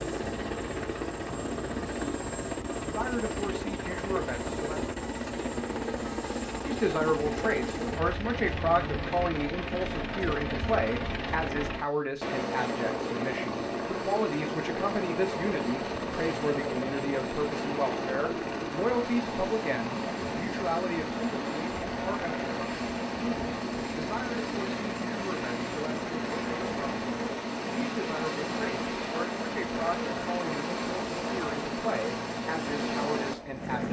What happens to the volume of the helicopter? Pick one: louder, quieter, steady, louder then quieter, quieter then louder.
steady.